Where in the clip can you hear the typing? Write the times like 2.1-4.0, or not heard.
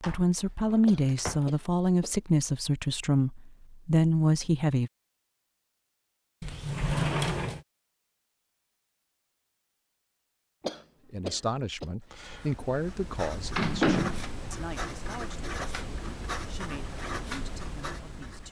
not heard.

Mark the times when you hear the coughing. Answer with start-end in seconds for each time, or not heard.
0.8-2.1, 10.6-11.9.